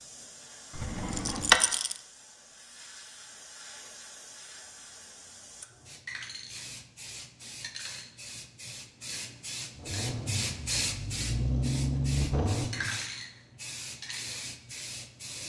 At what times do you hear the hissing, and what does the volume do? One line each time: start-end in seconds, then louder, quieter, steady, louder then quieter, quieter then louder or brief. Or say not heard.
0.0-15.4 louder.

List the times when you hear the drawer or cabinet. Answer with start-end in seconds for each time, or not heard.
0.8-1.6.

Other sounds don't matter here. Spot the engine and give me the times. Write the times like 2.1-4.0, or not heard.
9.8-12.9.